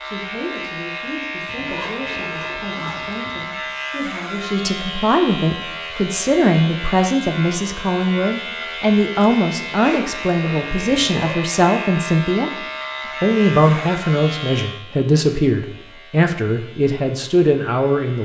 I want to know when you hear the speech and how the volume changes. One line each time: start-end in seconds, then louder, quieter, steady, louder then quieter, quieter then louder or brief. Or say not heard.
0.0-12.5 louder
13.2-18.1 steady.